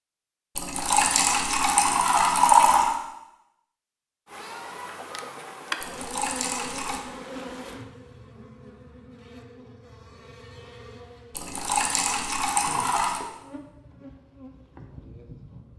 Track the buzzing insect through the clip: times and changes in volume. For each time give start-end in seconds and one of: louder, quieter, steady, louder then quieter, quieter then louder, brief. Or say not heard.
4.2-15.7 quieter.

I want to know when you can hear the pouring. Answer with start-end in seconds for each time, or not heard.
0.6-3.0, 5.8-7.0, 11.3-13.2.